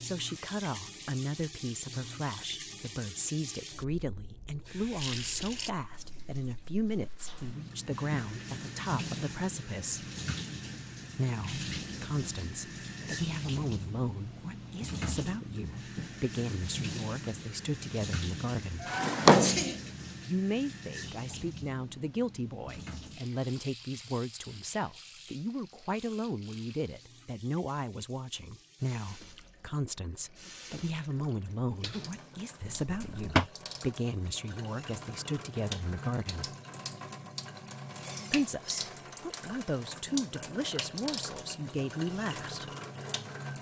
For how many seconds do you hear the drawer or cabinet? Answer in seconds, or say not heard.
2 s.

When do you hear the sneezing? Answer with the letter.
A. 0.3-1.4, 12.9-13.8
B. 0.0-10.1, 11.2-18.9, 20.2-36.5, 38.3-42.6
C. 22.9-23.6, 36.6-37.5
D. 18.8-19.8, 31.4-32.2
D.